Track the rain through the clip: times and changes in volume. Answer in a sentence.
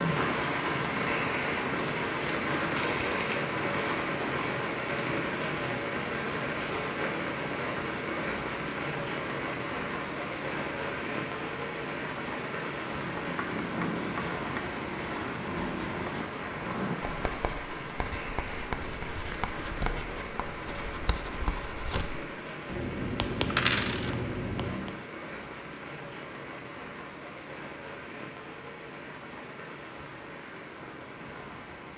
The rain can be heard from 0.0 to 31.9 s, getting quieter.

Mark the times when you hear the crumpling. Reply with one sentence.
The crumpling can be heard from 2.8 to 4.2 s.